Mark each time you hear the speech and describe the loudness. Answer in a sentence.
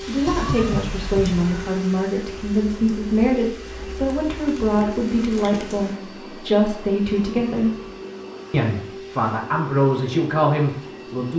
The speech can be heard from 0.1 to 7.8 s, at a steady volume; and briefly from 8.5 to 11.3 s.